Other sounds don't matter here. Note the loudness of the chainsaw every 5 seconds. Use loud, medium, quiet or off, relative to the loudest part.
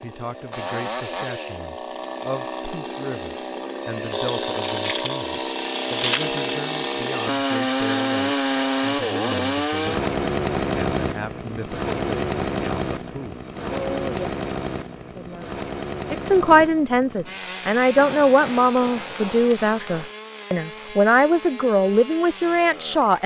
medium, loud, loud, medium, quiet.